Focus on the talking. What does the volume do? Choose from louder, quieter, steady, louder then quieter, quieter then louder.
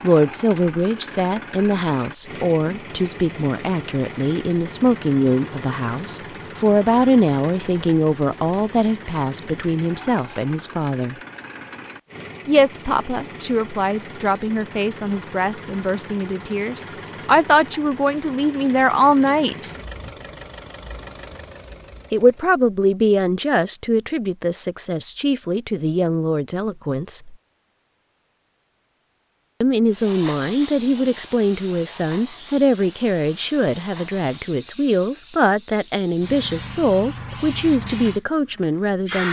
steady.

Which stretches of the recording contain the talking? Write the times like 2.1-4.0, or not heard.
0.0-11.2, 12.4-19.7, 22.1-27.4, 29.6-39.2.